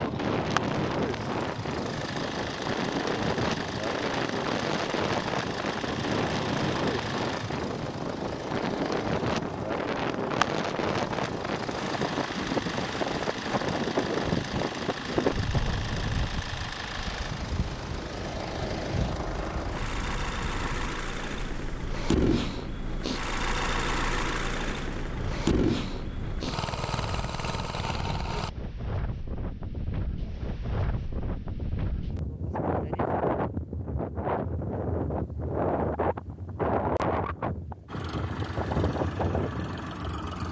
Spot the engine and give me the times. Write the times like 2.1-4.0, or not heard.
0.0-28.5, 37.9-40.4.